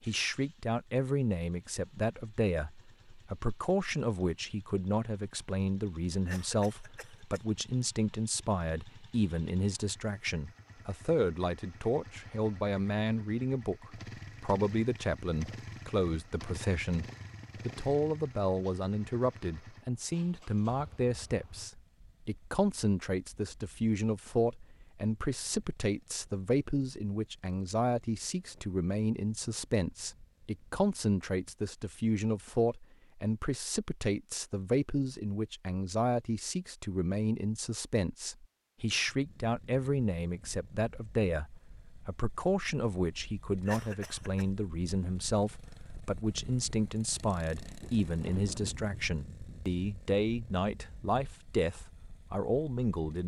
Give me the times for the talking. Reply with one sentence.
The talking can be heard from 0.1 to 53.2 s.